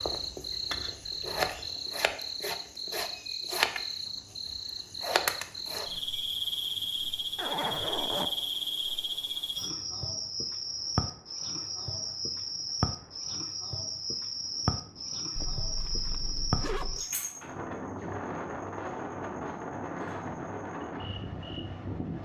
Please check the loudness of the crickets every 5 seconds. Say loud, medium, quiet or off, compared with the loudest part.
loud, loud, loud, medium, quiet.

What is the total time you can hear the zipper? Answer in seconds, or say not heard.
3 s.